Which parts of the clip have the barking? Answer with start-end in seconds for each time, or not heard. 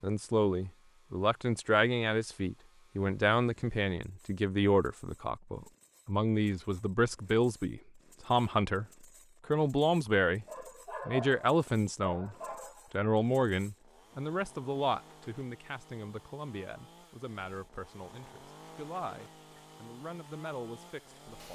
10.4-13.1.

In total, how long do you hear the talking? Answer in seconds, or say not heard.
20 s.